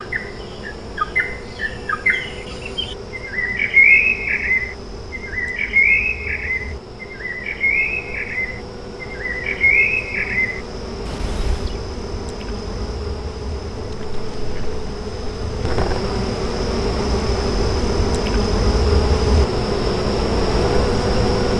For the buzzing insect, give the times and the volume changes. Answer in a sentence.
The buzzing insect can be heard from 0.0 to 21.5 s, getting louder.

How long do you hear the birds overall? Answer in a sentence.
You can hear the birds for 12 seconds altogether.